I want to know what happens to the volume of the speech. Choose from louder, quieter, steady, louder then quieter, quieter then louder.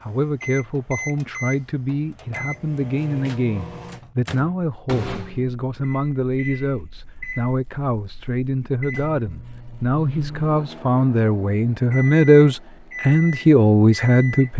louder.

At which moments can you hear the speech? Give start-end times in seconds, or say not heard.
0.0-14.5.